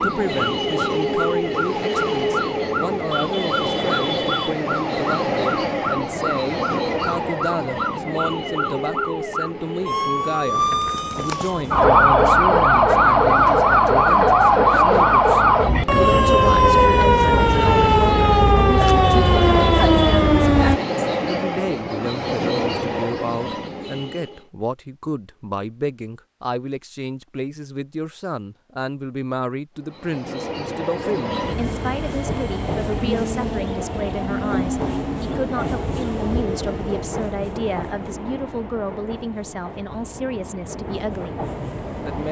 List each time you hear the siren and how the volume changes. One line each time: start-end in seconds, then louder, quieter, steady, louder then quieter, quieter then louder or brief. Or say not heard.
0.0-20.8 louder.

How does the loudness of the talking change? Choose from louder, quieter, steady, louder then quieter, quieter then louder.
steady.